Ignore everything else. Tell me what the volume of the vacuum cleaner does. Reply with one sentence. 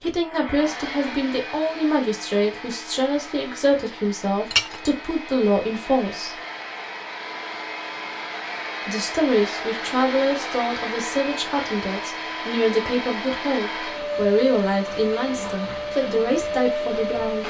The loudness of the vacuum cleaner goes up.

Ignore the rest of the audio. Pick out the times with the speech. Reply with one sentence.
The speech can be heard from 0.0 to 6.4 s and from 8.8 to 17.4 s.